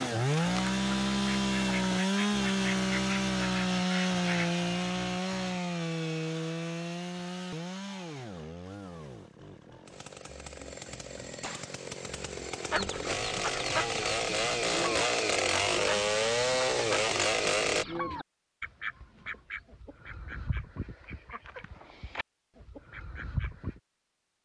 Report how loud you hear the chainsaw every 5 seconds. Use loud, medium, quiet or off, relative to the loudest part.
loud, medium, medium, loud, off.